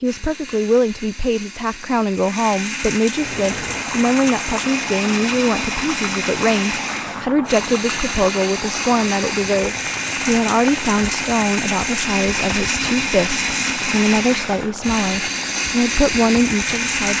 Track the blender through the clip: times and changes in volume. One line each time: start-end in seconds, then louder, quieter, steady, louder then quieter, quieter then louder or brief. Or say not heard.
0.0-17.1 louder.